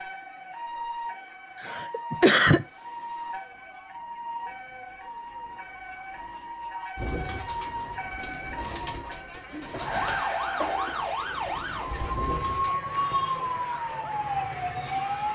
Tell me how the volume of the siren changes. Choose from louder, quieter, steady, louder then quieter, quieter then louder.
louder.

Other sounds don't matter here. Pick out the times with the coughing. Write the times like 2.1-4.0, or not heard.
1.6-2.6, 9.6-11.1.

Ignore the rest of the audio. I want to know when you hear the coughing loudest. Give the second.
2 s.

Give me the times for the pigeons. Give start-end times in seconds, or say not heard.
7.0-12.7.